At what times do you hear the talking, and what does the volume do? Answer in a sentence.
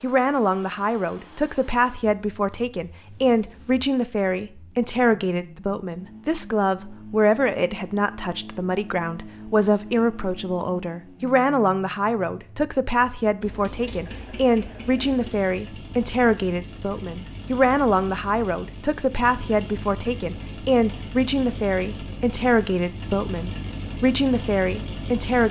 You can hear the talking from 0.0 to 25.4 s, at a steady volume.